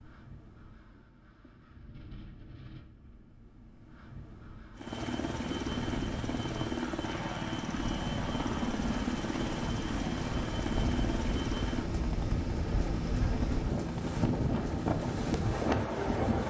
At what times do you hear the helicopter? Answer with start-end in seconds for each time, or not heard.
4.8-16.4.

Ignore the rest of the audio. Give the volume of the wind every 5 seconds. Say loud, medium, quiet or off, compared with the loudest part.
quiet, medium, loud, loud.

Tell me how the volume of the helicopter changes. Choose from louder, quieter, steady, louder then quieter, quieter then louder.
steady.